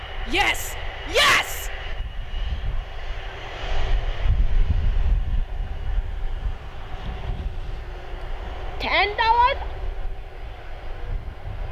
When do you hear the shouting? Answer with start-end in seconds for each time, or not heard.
0.2-1.7, 8.8-9.7.